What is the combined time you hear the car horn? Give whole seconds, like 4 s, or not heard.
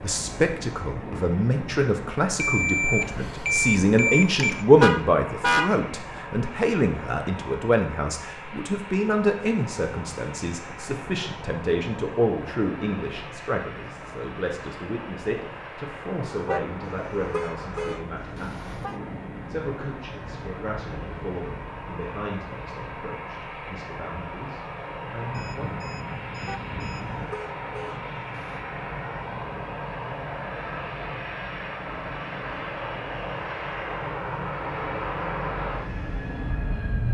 6 s.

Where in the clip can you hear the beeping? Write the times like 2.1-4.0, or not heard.
2.4-4.7, 25.2-27.3.